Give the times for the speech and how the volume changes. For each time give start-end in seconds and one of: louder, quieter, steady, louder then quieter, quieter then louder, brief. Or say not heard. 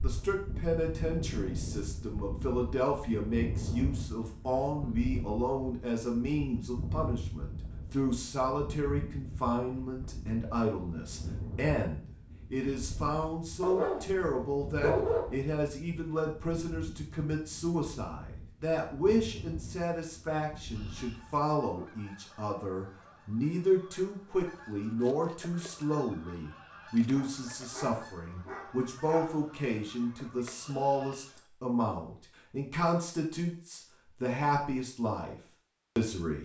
0.0-36.4 steady.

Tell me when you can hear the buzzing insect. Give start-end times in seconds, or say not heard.
not heard.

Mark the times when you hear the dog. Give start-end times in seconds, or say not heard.
13.6-15.4, 27.1-29.4.